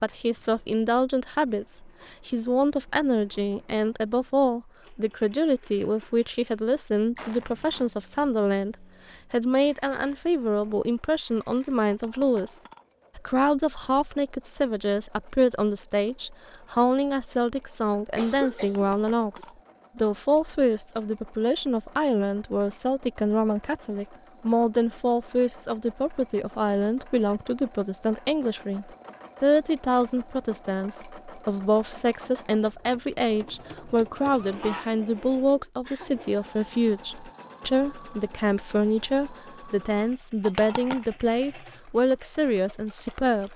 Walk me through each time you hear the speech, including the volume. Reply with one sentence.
You can hear the speech from 0.0 to 43.5 s, at a steady volume.